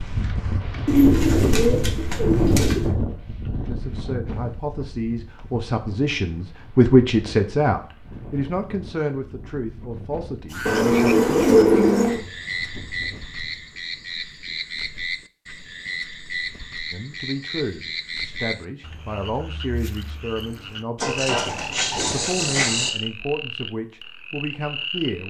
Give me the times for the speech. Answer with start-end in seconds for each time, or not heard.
3.6-11.6, 16.9-25.2.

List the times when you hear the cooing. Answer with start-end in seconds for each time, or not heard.
0.8-2.9, 10.7-12.2, 21.0-22.9.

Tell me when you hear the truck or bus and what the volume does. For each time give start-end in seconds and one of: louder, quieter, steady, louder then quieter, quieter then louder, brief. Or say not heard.
not heard.